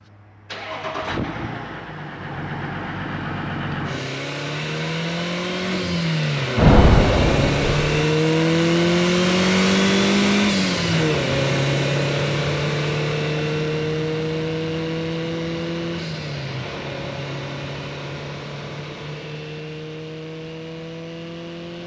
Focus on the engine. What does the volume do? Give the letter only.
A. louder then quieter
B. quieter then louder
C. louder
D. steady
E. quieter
A.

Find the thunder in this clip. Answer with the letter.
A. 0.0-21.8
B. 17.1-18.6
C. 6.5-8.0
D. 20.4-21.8
C.